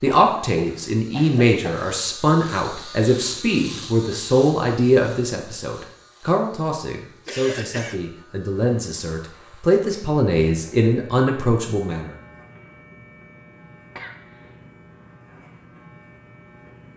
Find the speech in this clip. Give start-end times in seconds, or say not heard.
0.0-12.2.